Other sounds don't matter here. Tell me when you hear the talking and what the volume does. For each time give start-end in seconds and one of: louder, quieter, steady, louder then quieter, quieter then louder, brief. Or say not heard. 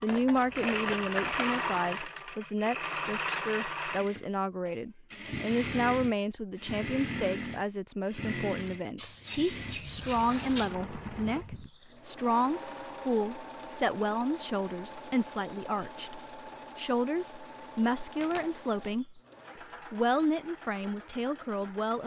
0.0-22.0 steady.